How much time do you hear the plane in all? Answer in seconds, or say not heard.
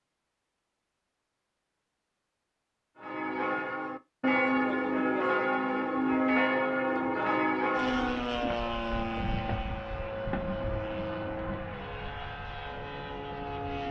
6 s.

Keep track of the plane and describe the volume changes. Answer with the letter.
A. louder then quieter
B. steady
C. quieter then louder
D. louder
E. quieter
E.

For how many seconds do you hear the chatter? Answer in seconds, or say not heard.
not heard.